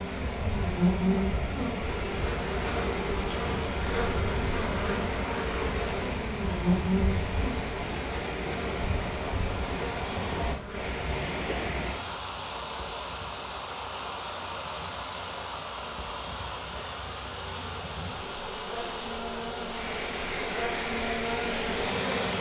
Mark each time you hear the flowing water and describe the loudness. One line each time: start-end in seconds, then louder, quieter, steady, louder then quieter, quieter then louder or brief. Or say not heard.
0.0-22.3 steady.